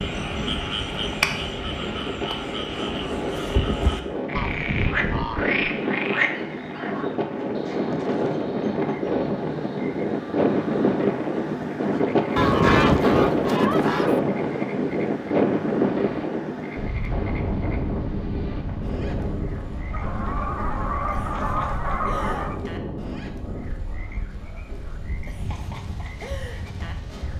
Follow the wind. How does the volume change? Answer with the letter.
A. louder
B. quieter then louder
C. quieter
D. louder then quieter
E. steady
D.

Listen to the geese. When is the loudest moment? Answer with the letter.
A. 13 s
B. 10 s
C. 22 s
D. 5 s
A.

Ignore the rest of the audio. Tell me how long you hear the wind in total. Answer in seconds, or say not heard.
27 s.